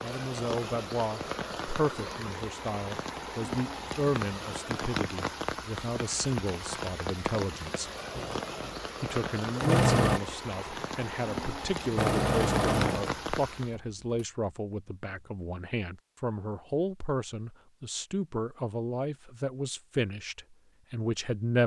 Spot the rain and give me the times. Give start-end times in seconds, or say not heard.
0.0-13.8.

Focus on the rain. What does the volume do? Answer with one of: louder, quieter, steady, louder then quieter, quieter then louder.
steady.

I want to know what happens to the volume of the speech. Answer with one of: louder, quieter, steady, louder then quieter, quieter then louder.
steady.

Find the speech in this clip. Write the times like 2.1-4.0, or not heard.
0.0-7.9, 9.0-21.6.